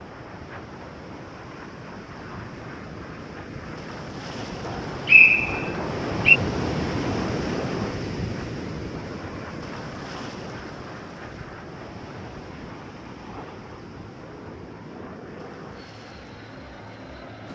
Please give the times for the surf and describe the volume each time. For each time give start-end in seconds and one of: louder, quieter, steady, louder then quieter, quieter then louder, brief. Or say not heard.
0.0-17.5 louder then quieter.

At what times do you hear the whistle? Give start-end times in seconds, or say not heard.
4.7-6.4.